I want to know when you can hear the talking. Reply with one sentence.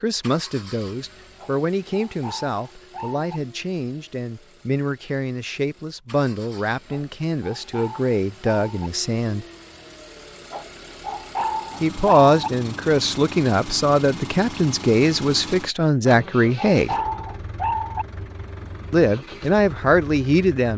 You can hear the talking from 0.0 to 9.4 s, from 11.8 to 16.9 s and from 18.9 to 20.7 s.